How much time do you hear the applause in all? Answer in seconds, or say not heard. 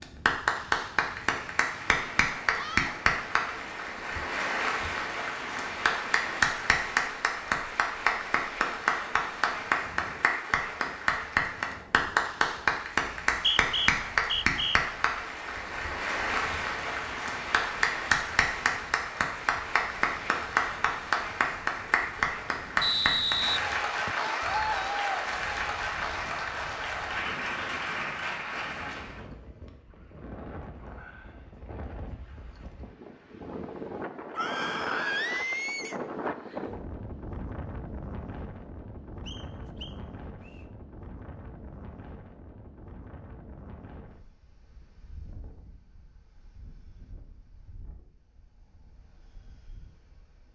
29 s.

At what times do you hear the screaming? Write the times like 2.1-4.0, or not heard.
2.5-3.0, 24.3-25.1, 34.4-36.0.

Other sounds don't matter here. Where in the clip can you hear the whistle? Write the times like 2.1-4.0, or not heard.
13.1-14.8, 22.8-24.3, 39.2-40.6.